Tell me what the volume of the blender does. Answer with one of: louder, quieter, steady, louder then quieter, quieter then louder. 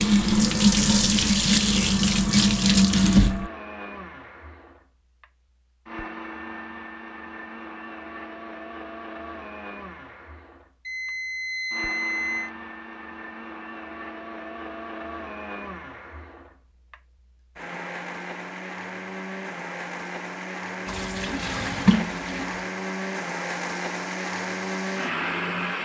louder.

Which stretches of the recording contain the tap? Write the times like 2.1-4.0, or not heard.
0.0-3.5, 20.9-22.6.